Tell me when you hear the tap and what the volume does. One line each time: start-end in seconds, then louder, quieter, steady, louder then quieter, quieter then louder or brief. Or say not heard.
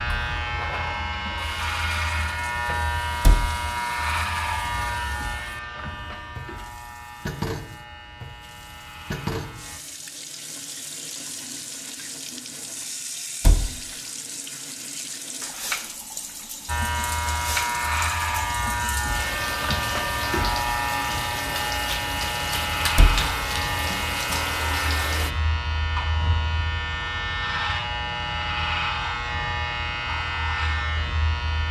0.1-25.4 louder.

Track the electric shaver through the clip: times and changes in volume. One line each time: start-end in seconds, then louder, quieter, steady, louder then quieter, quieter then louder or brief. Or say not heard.
0.0-9.8 quieter
16.6-31.6 steady.